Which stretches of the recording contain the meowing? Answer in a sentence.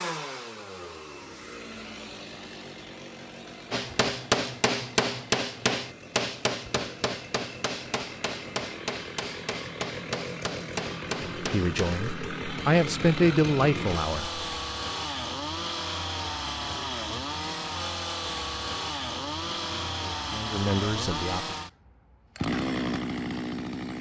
You can't hear the meowing here.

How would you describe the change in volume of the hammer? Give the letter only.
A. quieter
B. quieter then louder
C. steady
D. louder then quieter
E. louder
A.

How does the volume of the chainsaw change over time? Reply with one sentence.
The loudness of the chainsaw goes up.